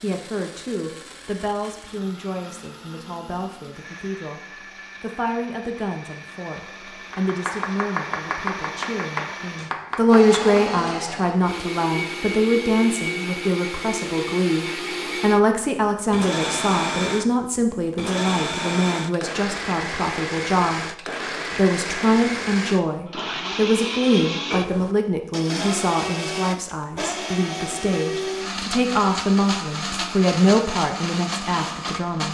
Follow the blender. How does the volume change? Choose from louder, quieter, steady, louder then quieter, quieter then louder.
louder.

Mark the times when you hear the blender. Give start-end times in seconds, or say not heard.
0.0-32.2.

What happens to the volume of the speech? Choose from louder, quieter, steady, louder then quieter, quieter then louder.
louder.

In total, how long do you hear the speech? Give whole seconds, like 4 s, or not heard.
31 s.